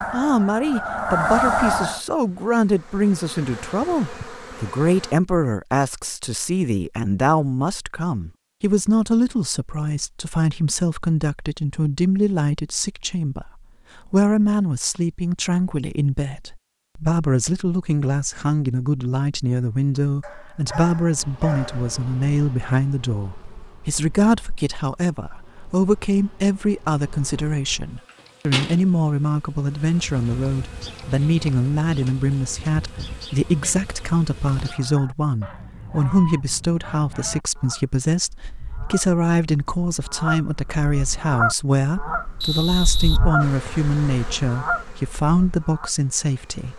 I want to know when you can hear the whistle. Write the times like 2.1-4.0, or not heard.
42.4-43.9.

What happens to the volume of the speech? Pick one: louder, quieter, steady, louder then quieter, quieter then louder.
steady.